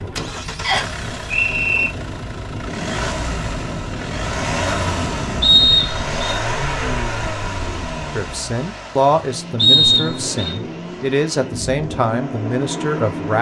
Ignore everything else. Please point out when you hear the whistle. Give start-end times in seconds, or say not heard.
0.6-1.9, 5.4-6.3, 9.6-10.6.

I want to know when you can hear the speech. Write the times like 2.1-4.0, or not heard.
8.2-13.3.